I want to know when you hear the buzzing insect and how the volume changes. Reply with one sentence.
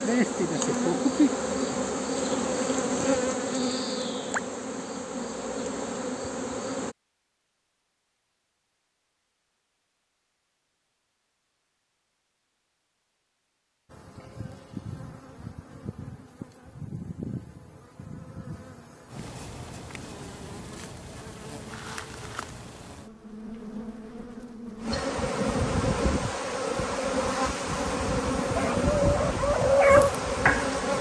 You can hear the buzzing insect from 0.0 to 7.0 s, getting quieter; and from 13.9 to 30.9 s, getting louder.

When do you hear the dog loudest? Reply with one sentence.
The volume of the dog peaks at 30 seconds.